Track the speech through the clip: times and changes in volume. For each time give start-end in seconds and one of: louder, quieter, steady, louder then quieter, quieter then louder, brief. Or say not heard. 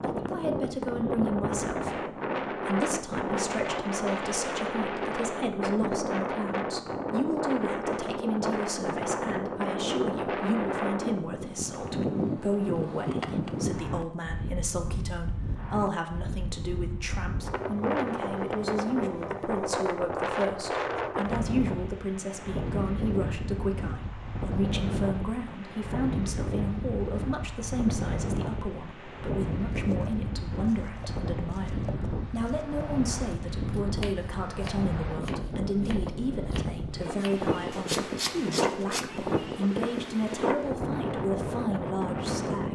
0.0-42.7 steady.